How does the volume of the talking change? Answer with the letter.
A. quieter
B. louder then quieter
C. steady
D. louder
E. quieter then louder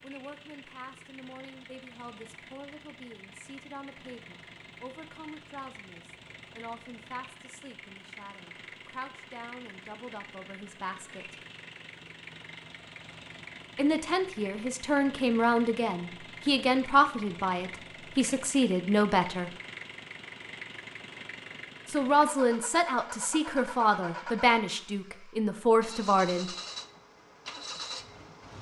D.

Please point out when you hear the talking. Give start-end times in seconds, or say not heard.
0.0-11.3, 13.8-19.5, 21.9-26.6.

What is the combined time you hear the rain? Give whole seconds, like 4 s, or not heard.
not heard.